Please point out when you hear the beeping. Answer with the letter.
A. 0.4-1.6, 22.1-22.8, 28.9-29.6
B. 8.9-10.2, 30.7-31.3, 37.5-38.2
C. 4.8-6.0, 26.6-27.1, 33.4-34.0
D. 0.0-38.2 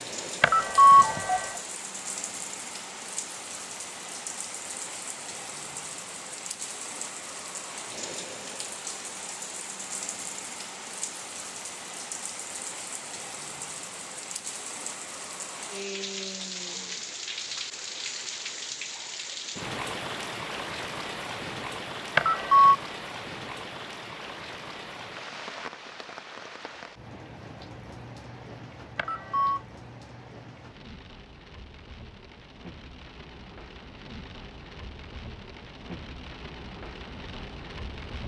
A.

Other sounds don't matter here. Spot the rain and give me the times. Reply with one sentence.
The rain can be heard from 0.0 to 38.2 s.